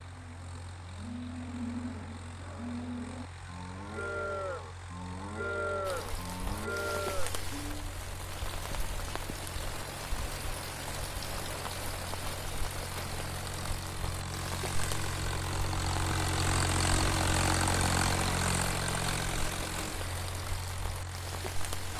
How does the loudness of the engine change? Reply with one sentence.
The volume of the engine goes up.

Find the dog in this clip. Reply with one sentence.
The dog can't be heard in this clip.